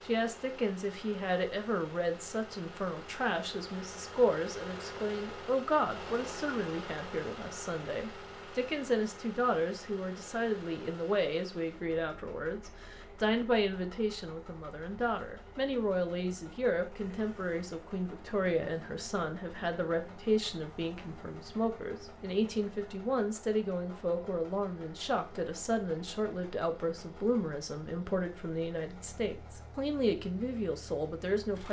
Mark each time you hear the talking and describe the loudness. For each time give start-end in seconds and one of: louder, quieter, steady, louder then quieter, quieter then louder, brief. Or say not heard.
0.1-31.6 steady.